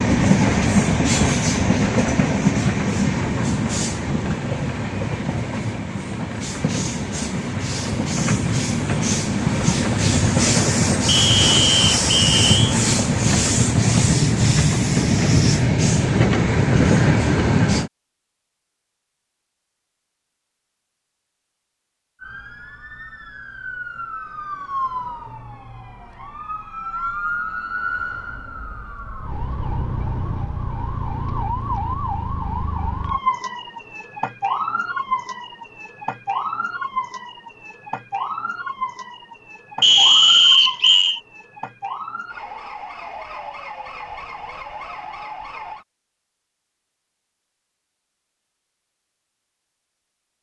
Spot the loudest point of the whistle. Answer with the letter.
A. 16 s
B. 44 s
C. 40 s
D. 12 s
C.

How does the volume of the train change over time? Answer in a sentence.
The loudness of the train goes down, then up.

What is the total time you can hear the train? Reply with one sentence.
You can hear the train for 18 seconds altogether.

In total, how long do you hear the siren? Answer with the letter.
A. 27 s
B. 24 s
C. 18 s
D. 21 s
B.